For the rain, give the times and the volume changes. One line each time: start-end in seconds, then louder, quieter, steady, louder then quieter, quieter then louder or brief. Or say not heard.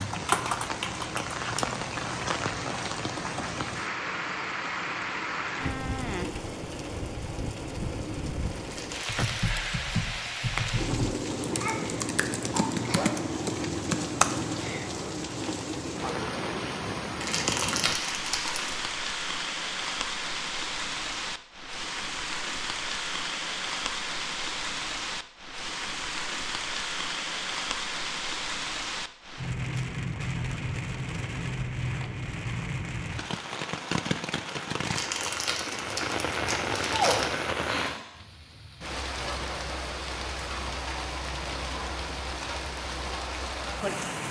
0.0-44.2 steady.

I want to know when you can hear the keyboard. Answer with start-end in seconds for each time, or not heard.
0.0-1.6, 9.1-14.9.